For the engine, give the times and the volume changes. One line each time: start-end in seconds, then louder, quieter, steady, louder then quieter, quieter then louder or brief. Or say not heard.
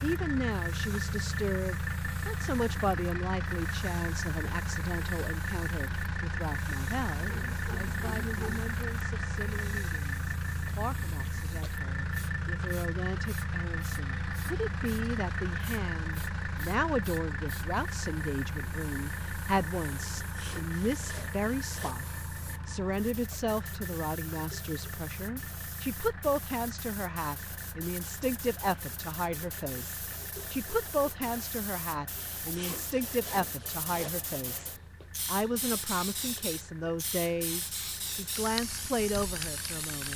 0.0-39.9 quieter.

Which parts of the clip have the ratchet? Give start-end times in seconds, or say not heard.
not heard.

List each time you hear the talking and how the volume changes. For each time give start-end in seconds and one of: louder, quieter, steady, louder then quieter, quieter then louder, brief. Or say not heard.
0.0-22.1 quieter then louder
22.6-40.1 steady.